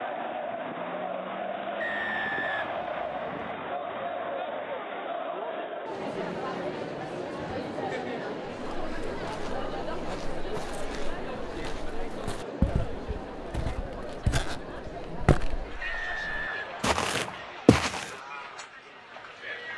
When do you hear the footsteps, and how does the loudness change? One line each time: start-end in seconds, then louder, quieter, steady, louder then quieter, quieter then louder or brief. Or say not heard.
8.5-18.1 louder.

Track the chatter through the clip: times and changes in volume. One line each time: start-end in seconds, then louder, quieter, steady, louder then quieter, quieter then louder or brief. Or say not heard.
0.0-19.7 quieter.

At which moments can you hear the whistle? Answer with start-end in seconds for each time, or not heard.
1.8-3.5, 15.8-17.6.